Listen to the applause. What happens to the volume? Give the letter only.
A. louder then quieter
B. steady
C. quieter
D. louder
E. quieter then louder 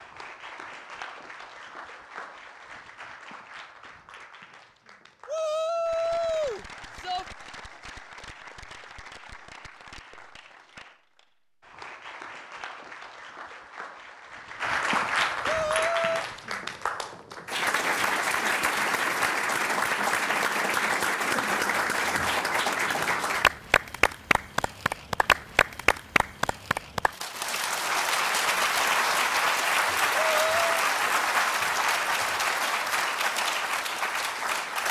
D.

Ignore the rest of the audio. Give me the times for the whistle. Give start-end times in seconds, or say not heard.
not heard.